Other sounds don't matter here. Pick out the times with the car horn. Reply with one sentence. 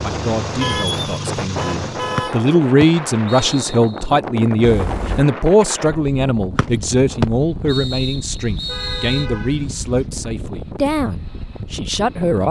You can hear the car horn from 0.6 to 2.4 s, from 4.6 to 5.2 s and from 8.3 to 10.1 s.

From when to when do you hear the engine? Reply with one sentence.
The engine can be heard from 0.0 to 2.3 s.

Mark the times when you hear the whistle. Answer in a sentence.
You can hear the whistle from 2.1 to 4.0 s and from 6.5 to 9.2 s.